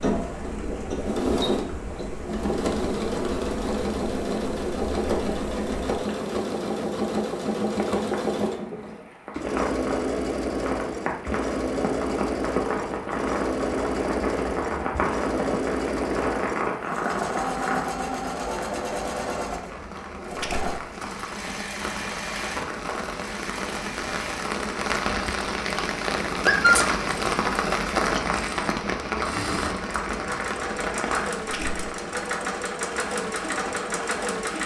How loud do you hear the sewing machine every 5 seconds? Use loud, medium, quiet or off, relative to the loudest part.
loud, loud, loud, loud, medium, medium, loud.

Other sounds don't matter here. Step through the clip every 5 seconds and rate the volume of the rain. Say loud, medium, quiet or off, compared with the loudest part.
quiet, quiet, medium, medium, medium, loud, medium.